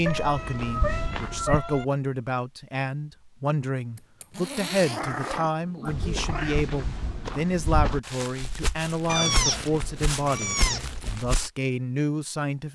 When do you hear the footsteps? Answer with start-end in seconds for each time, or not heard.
0.0-1.6, 5.8-11.5.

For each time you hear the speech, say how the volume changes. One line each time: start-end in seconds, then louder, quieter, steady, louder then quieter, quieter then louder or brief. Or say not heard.
0.0-12.7 steady.